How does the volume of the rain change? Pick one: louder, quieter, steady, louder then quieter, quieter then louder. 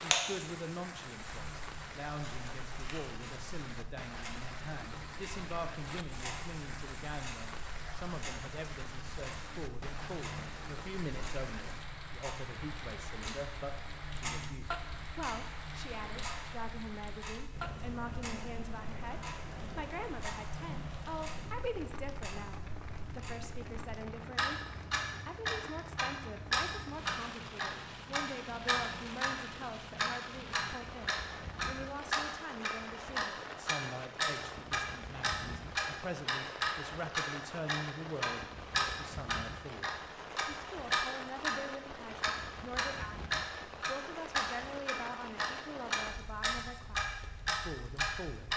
steady.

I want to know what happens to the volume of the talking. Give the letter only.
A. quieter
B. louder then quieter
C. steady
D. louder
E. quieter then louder
C.